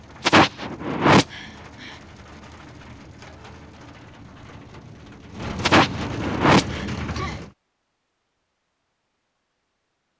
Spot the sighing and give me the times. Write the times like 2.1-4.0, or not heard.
0.2-1.9, 5.6-7.3.